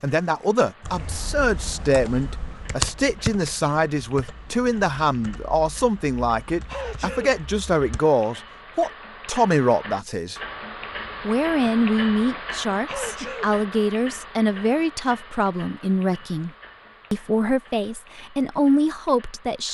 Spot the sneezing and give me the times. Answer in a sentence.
You can hear the sneezing from 6.7 to 7.3 s and from 12.8 to 13.6 s.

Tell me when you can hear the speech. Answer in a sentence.
You can hear the speech from 0.0 to 10.4 s, from 11.2 to 16.5 s and from 17.1 to 19.6 s.